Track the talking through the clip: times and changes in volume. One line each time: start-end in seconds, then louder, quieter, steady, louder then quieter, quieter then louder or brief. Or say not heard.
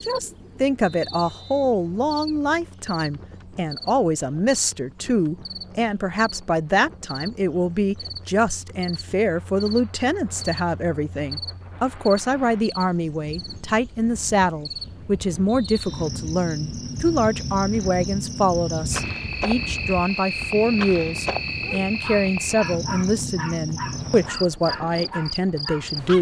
0.0-26.1 steady.